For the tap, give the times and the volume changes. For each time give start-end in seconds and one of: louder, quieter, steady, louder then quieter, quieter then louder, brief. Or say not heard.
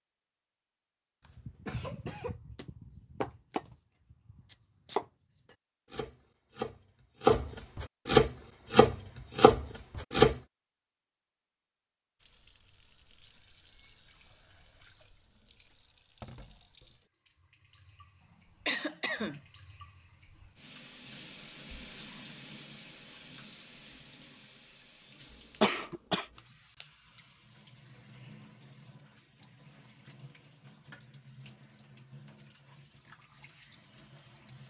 12.2-34.6 louder then quieter.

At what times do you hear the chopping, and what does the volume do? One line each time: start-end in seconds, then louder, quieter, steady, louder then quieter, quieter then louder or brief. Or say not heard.
1.2-10.3 louder.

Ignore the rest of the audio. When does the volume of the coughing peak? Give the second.
26 s.